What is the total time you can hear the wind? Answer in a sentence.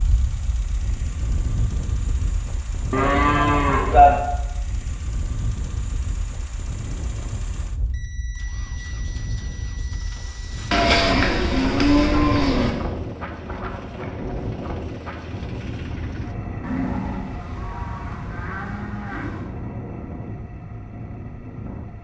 The wind can be heard for 22 seconds in total.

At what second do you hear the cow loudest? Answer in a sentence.
The volume of the cow peaks at 4 seconds.